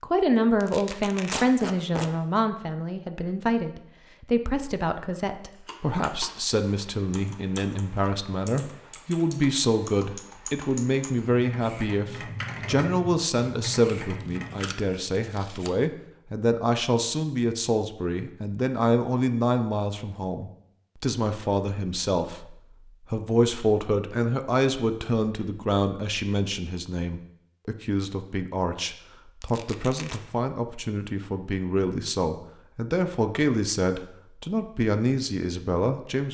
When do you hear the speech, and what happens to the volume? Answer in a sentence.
The speech can be heard from 0.0 to 36.2 s, at a steady volume.